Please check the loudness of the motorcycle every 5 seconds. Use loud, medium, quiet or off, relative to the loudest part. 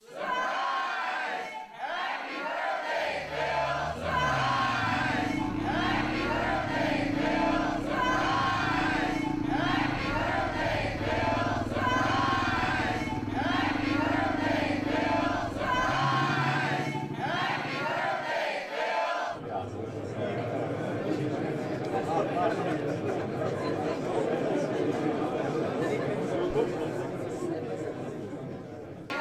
medium, loud, loud, loud, off, off.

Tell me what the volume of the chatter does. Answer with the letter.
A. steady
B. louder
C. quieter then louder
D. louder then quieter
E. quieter
A.